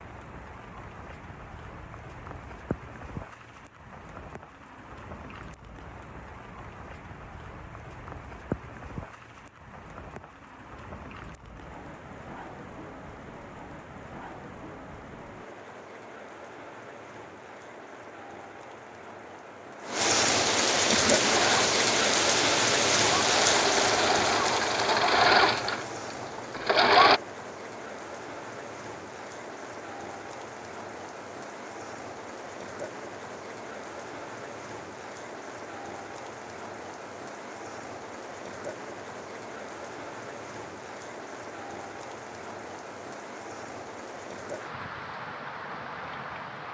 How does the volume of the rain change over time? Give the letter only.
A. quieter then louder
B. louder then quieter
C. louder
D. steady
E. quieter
B.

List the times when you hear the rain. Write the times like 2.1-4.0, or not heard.
0.0-46.6.